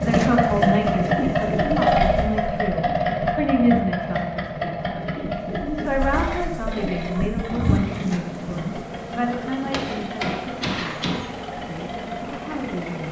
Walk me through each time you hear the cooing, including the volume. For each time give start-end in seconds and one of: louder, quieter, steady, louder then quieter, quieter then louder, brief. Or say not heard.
0.0-8.8 quieter then louder.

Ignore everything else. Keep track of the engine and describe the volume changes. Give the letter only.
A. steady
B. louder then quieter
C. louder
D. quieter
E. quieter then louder
D.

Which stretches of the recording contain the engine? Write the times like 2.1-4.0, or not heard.
0.0-13.0.